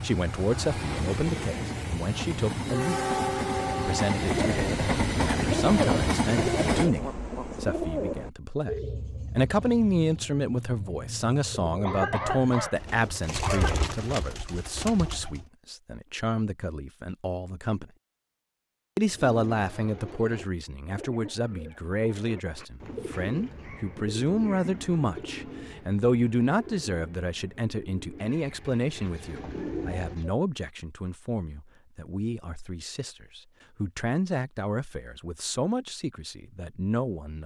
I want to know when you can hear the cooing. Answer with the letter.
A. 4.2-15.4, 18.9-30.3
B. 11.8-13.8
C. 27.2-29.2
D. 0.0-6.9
A.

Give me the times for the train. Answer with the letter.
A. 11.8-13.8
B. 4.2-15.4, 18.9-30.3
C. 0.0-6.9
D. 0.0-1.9
C.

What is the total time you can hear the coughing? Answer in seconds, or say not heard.
2 s.